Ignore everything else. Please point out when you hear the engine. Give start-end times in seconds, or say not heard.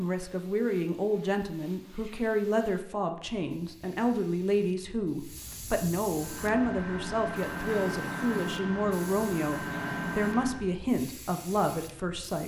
6.1-10.7.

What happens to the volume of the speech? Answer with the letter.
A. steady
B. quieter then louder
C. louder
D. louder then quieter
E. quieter
A.